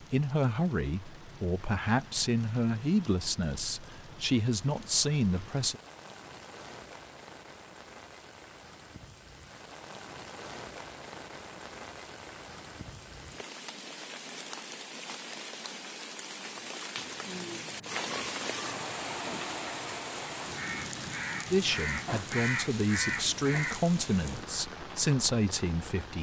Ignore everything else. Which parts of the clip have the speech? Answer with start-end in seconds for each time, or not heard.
0.0-5.8, 21.5-26.1.